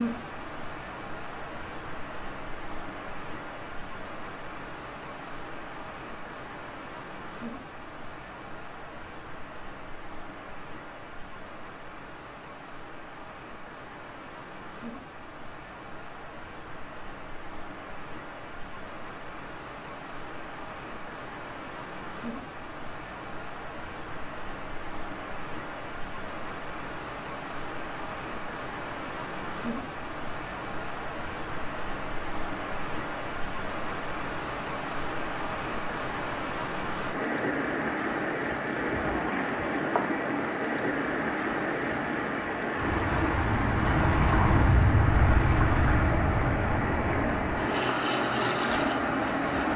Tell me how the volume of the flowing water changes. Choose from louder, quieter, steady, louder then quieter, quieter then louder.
louder.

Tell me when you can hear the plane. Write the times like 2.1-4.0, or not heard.
42.8-49.7.